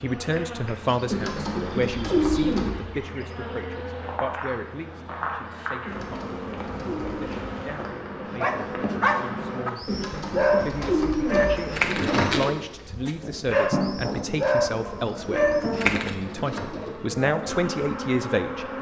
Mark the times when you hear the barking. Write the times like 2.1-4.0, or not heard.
8.4-16.1.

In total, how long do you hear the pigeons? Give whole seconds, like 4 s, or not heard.
9 s.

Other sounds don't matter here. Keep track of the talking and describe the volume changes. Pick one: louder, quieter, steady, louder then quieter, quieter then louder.
quieter then louder.